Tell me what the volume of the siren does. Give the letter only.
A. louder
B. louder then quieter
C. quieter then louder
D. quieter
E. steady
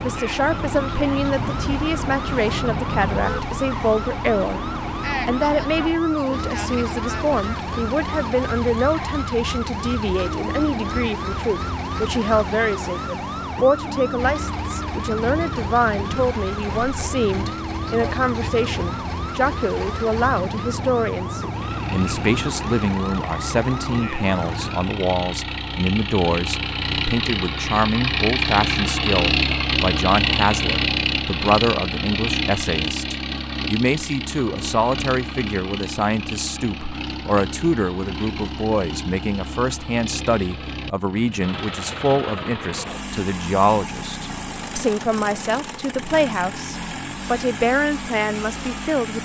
E.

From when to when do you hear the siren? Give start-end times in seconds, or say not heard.
0.0-24.9.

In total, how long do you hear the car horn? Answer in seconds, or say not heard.
2 s.